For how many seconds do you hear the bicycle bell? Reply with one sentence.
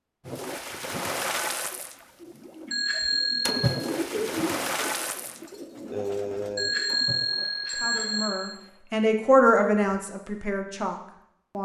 You can hear the bicycle bell for 3 seconds altogether.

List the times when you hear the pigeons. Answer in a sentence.
You can hear the pigeons from 2.2 to 7.0 s.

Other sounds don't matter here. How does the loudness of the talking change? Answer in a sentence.
The loudness of the talking goes up, then down.